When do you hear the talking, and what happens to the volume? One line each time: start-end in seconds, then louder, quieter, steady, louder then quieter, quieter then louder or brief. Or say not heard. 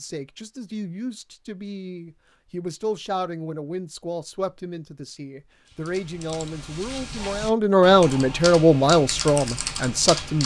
0.0-10.4 louder.